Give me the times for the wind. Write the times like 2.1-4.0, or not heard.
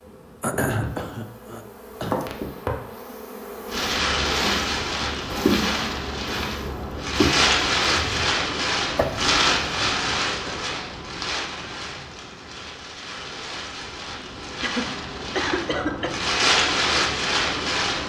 3.6-18.0.